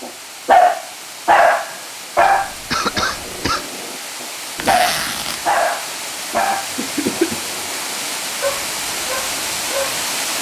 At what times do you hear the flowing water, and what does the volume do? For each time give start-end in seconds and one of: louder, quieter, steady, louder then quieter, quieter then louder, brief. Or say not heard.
0.0-10.3 louder.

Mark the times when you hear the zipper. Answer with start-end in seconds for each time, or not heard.
4.5-5.5.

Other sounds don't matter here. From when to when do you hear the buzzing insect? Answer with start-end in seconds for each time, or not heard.
not heard.